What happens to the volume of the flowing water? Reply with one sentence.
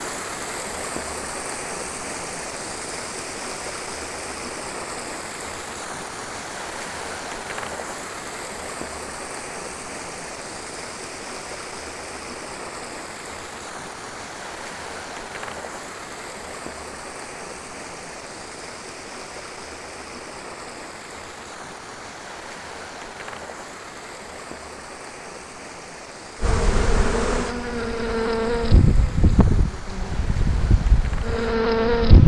The volume of the flowing water goes down.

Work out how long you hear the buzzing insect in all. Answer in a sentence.
You can hear the buzzing insect for 6 seconds altogether.